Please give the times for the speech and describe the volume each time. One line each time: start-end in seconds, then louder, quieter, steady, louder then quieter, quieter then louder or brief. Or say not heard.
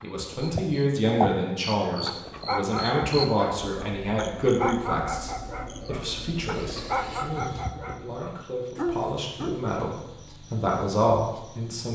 0.0-11.8 quieter then louder.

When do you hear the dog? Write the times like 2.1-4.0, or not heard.
1.9-9.6.